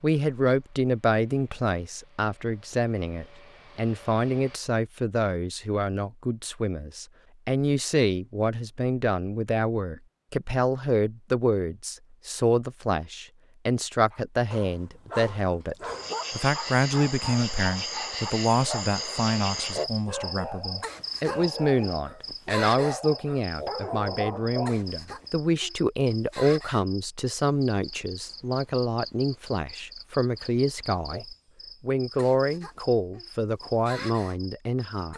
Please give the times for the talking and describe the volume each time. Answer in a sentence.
You can hear the talking from 0.0 to 35.1 s, at a steady volume.